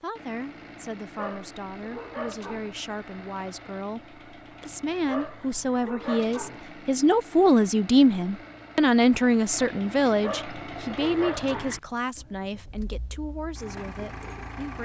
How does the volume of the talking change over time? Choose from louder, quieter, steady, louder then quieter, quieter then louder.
louder then quieter.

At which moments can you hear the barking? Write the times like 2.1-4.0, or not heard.
1.1-2.8, 5.0-6.7, 10.2-11.8.